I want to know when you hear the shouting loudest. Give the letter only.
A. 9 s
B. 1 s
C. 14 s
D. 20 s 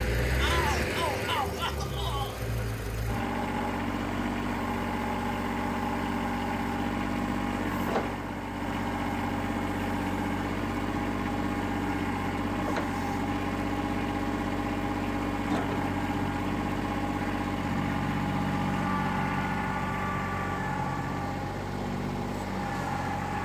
B.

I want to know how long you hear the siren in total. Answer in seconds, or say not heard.
not heard.